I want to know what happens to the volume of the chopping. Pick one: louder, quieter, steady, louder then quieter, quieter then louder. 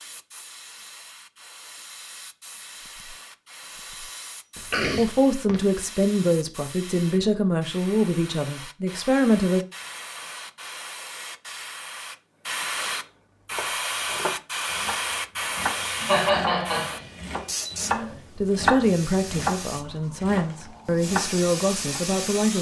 louder then quieter.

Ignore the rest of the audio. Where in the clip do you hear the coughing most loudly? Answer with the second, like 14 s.
16 s.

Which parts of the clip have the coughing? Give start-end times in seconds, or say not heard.
4.5-5.6, 15.8-18.2.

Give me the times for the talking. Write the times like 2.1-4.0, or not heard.
5.0-9.7, 18.4-22.5.